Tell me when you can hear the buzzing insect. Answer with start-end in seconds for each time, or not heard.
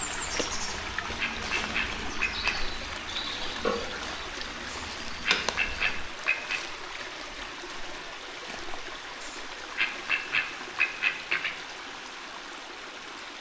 0.0-6.0.